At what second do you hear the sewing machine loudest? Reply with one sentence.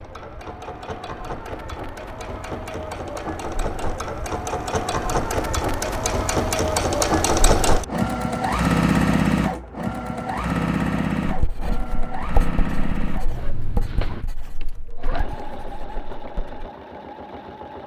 The volume of the sewing machine peaks at 9 seconds.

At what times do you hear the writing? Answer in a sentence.
You can hear the writing from 11.2 to 16.7 s.